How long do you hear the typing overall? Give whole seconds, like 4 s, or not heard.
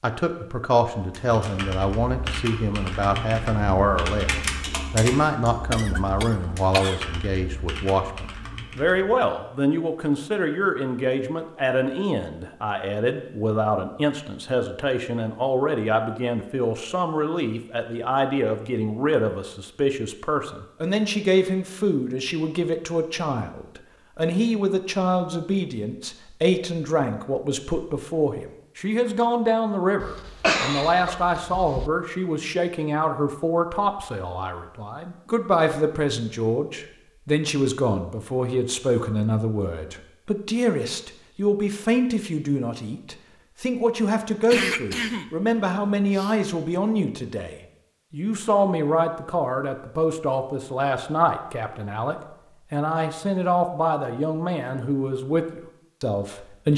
8 s.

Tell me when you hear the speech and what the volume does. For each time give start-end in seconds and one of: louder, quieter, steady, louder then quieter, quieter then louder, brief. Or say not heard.
0.0-56.7 steady.